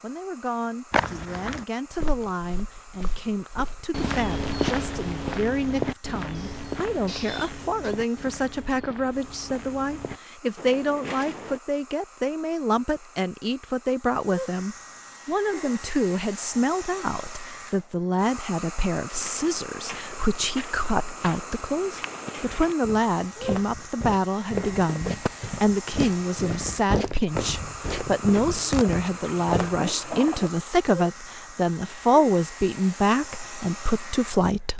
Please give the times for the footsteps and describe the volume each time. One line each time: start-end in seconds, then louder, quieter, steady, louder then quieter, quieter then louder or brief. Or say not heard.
0.9-11.6 louder then quieter
19.1-29.8 louder.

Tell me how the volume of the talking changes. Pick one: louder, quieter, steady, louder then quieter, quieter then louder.
louder.